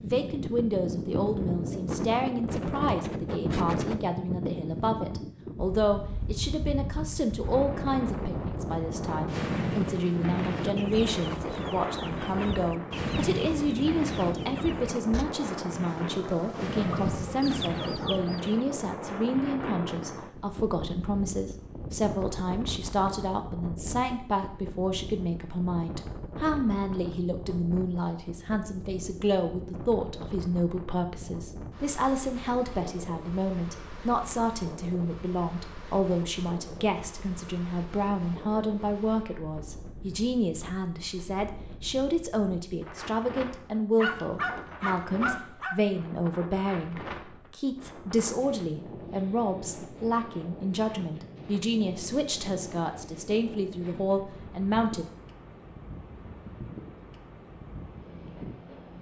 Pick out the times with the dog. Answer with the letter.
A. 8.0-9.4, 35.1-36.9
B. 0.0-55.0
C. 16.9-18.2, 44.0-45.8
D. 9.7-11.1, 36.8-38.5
C.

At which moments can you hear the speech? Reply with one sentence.
The speech can be heard from 0.0 to 55.0 s.